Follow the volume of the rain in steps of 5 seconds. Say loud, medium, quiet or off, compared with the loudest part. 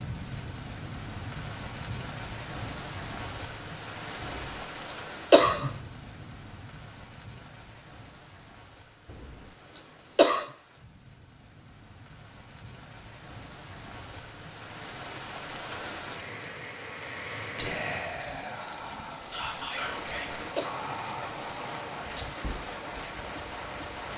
loud, medium, medium, loud, loud.